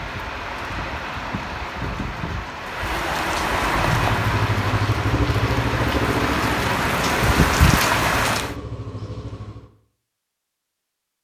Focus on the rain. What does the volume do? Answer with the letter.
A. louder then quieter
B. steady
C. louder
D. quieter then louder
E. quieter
C.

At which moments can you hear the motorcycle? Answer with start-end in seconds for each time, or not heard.
3.6-9.7.